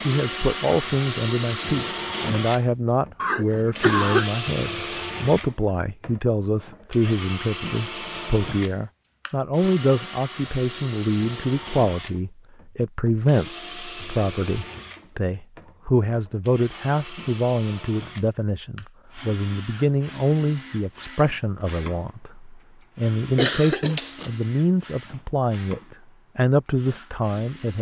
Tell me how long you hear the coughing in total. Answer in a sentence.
You can hear the coughing for 2 seconds altogether.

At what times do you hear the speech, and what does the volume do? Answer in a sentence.
You can hear the speech from 0.0 to 27.7 s, at a steady volume.